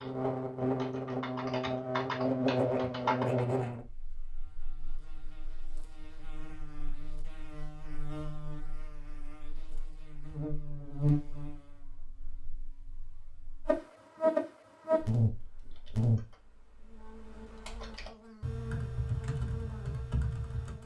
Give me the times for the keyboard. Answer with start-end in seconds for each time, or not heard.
0.0-3.4, 15.2-20.8.